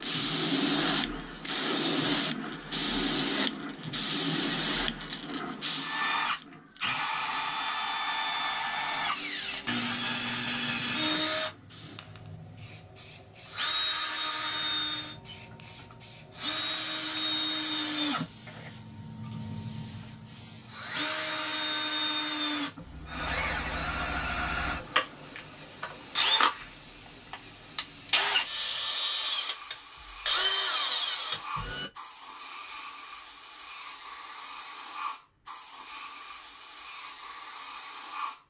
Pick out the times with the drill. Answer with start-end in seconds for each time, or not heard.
0.0-31.9.